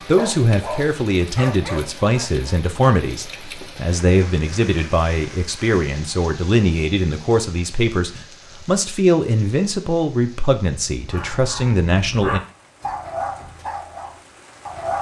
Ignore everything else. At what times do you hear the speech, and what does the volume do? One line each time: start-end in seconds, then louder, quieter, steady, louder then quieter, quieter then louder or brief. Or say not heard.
0.1-12.4 steady.